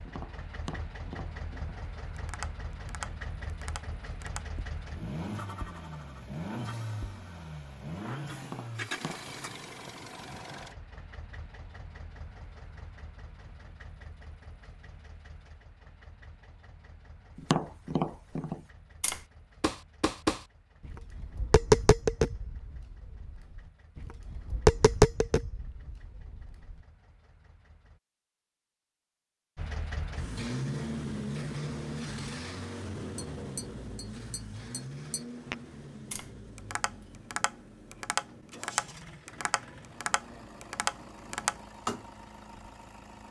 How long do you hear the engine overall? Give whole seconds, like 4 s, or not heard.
42 s.